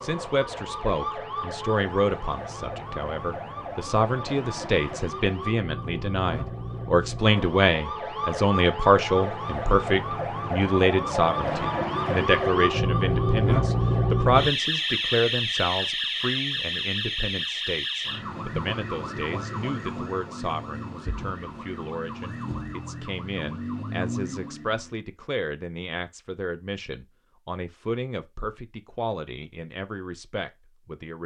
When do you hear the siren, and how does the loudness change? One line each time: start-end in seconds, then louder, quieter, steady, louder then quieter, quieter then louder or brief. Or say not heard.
0.0-24.9 louder then quieter.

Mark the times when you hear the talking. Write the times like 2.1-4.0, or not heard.
0.0-31.2.